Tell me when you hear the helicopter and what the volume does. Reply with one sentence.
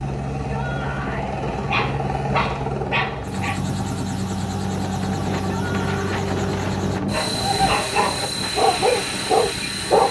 You can hear the helicopter from 0.0 to 10.0 s, at a steady volume.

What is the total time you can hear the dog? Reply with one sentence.
You can hear the dog for 5 seconds altogether.